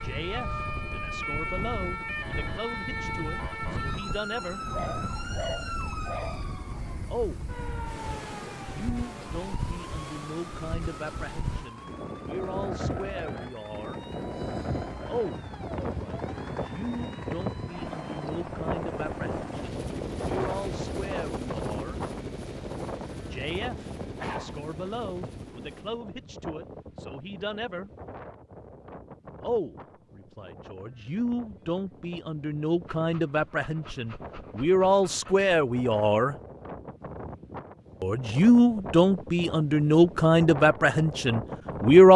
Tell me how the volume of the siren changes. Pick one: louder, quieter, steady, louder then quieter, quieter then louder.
quieter.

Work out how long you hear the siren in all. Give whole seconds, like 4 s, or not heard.
18 s.